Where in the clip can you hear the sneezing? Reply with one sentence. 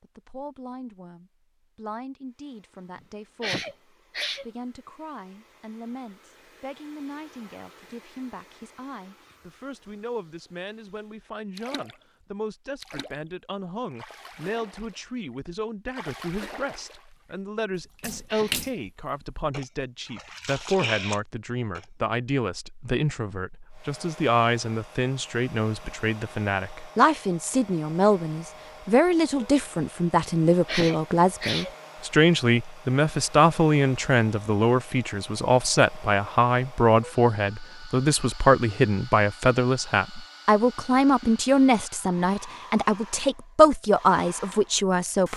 The sneezing can be heard from 3.4 to 4.5 s, from 17.9 to 18.6 s and from 30.6 to 31.7 s.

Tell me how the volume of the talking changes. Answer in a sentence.
The loudness of the talking goes up.